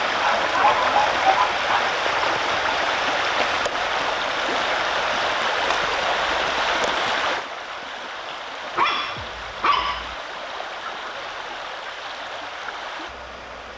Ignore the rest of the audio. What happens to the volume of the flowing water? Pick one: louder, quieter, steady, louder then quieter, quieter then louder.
quieter.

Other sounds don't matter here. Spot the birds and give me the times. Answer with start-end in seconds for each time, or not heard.
not heard.